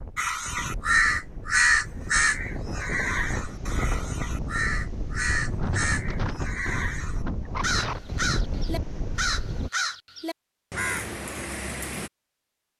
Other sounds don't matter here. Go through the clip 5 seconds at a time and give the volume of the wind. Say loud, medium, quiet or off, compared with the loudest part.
loud, loud, off.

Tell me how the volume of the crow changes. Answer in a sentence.
The volume of the crow goes down.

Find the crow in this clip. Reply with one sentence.
The crow can be heard from 0.1 to 12.1 s.